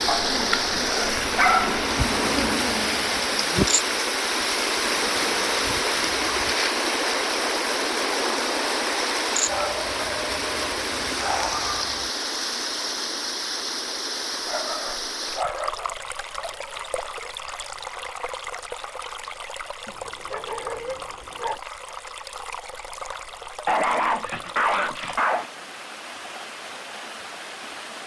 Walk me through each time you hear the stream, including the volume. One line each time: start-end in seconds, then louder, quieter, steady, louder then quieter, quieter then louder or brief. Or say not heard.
0.0-28.0 quieter.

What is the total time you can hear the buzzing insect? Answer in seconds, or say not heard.
6 s.